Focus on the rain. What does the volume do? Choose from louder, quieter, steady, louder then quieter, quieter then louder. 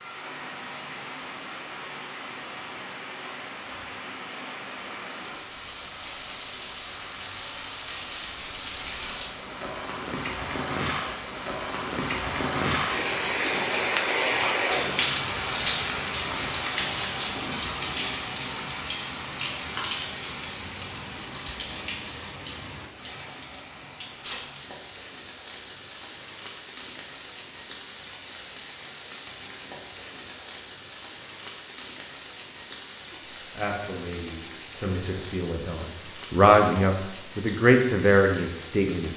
louder then quieter.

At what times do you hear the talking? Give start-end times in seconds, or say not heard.
33.5-39.1.